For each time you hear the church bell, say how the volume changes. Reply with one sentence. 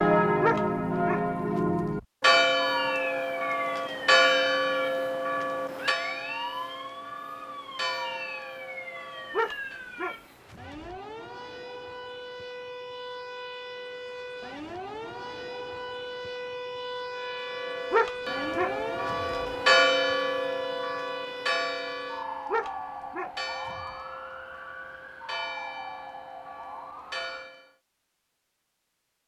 You can hear the church bell from 0.0 to 9.8 s, getting quieter; and from 17.1 to 27.7 s, getting louder then quieter.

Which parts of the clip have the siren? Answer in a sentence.
The siren can be heard from 2.5 to 27.5 s.